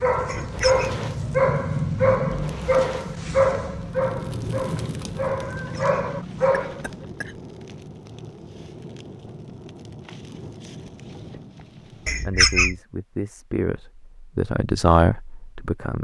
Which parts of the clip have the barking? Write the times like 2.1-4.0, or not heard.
0.0-7.0.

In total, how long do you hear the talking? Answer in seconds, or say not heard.
4 s.